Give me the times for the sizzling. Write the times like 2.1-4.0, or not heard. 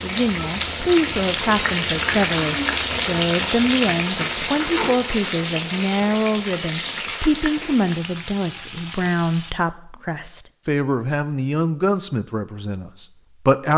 0.0-9.6.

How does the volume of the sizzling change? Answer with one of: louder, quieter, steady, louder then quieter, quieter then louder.
quieter.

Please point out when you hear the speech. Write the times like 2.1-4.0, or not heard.
0.0-13.7.